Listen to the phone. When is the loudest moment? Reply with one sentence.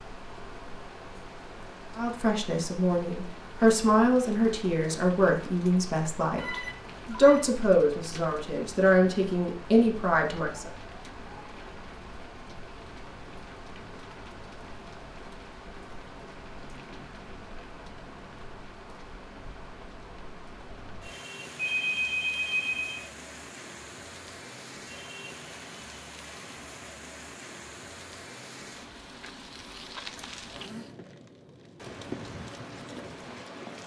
The loudest moment of the phone is at 22 seconds.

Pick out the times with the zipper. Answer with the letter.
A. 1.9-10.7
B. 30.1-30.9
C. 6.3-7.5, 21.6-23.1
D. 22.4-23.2
B.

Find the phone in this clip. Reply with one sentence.
You can hear the phone from 6.3 to 7.5 s and from 21.6 to 23.1 s.